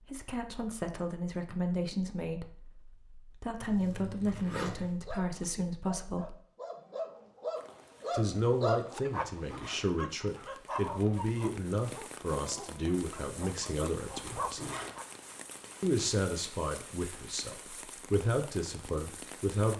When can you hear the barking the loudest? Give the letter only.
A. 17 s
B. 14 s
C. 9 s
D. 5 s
C.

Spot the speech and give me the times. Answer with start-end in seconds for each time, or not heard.
0.0-6.3, 8.1-14.6, 15.8-19.7.